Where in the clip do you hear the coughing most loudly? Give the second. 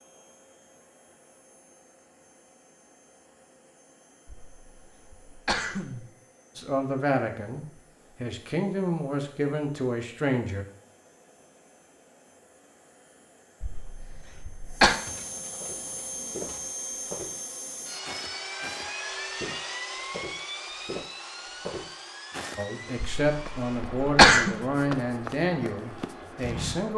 24 s.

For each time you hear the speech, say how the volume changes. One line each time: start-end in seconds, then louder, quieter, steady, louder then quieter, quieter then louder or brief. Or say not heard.
6.5-10.7 quieter then louder
22.6-26.9 quieter.